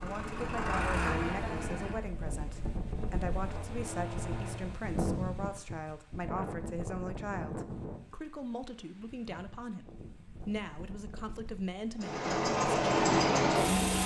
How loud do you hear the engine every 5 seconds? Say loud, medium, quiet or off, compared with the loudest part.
medium, off, loud.